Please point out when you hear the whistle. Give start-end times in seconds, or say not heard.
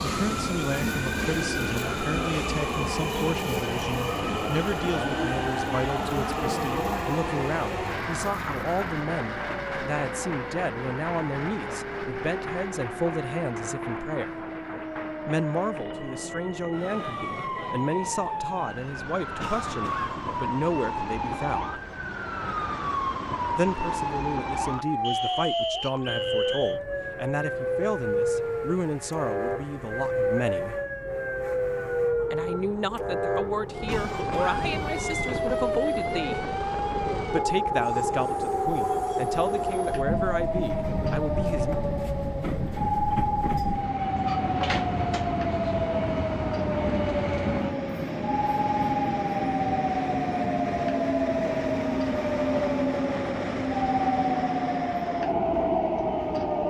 25.0-26.8.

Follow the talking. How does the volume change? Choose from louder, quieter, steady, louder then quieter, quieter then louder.
steady.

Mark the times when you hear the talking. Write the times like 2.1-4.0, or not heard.
0.0-14.4, 15.2-21.8, 23.6-30.8, 32.3-36.5, 37.3-41.8.